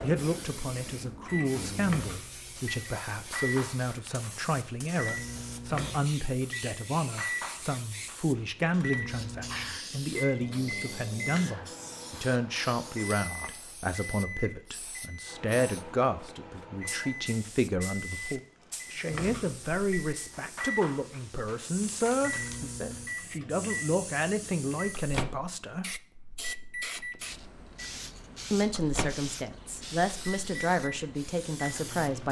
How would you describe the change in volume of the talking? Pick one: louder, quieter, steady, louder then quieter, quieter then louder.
steady.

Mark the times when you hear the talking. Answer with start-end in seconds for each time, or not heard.
0.0-26.0, 28.5-32.2.